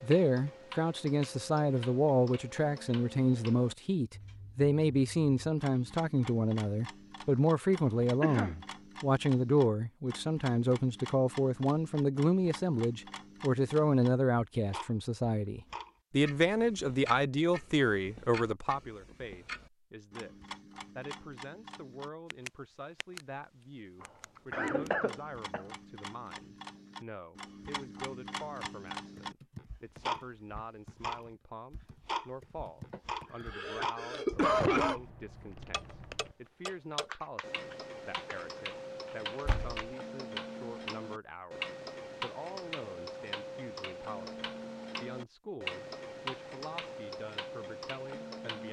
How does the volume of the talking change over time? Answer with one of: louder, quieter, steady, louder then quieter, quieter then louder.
quieter.